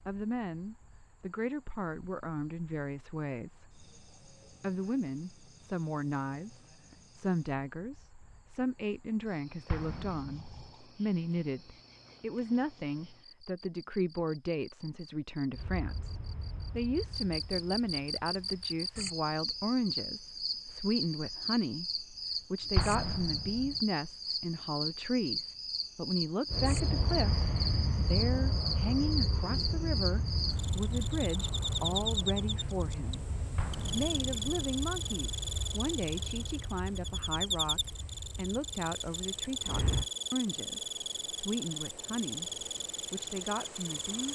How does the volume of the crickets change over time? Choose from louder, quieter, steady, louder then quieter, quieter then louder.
louder.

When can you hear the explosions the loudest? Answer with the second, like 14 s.
23 s.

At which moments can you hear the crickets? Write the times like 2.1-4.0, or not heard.
0.0-44.3.